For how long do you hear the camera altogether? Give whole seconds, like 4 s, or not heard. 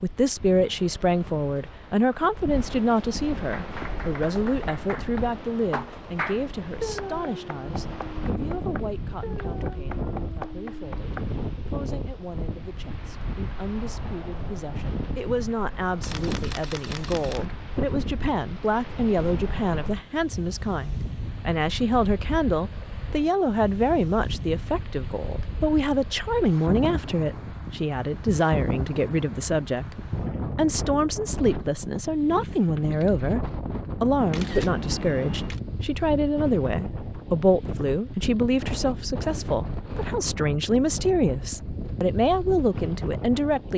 3 s.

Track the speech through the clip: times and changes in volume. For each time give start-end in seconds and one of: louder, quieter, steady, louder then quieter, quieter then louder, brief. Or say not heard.
0.0-33.4 quieter then louder
34.0-43.7 steady.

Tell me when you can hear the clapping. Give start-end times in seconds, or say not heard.
3.5-11.2.